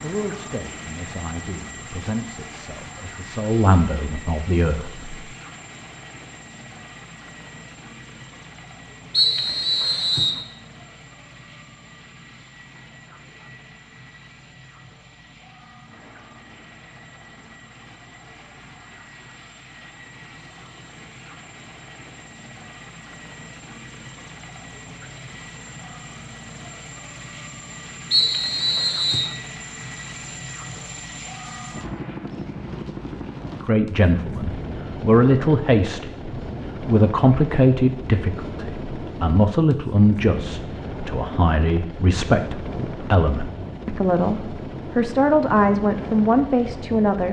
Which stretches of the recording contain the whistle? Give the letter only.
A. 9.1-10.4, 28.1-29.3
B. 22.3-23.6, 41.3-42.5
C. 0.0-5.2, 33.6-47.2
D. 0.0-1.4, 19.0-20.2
A.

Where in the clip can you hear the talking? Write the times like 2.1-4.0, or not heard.
0.0-5.2, 33.6-47.2.